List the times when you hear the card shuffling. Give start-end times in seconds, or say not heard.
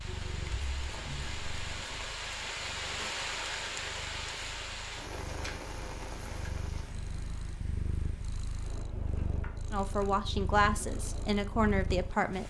0.1-2.0, 5.1-6.6, 9.2-10.4.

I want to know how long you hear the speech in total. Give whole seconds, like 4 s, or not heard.
3 s.